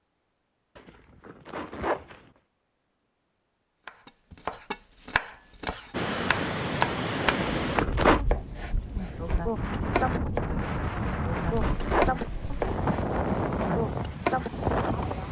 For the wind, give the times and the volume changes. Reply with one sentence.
You can hear the wind from 5.9 to 15.2 s, getting quieter then louder.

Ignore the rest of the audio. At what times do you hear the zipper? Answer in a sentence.
The zipper can be heard from 0.8 to 2.2 s, from 7.2 to 8.2 s and from 10.8 to 12.8 s.